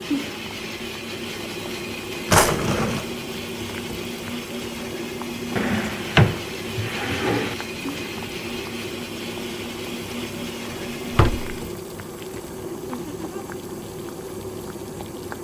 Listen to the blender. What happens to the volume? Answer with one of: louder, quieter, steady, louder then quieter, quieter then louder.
steady.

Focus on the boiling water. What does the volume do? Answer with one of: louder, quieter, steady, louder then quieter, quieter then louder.
steady.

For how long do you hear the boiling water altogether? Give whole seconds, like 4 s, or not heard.
15 s.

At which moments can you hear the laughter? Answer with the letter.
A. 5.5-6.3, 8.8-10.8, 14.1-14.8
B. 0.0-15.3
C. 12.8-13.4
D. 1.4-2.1
C.